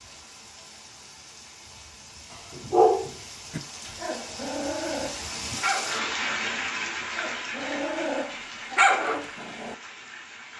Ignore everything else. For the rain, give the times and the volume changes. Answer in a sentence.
The rain can be heard from 0.0 to 10.5 s, getting louder then quieter.